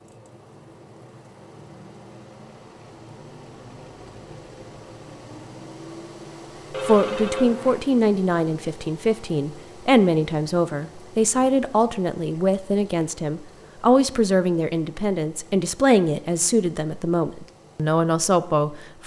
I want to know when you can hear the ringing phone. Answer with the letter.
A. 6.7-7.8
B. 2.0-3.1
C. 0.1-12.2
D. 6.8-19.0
A.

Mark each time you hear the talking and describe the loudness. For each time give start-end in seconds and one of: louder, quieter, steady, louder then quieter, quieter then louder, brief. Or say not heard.
6.8-19.0 steady.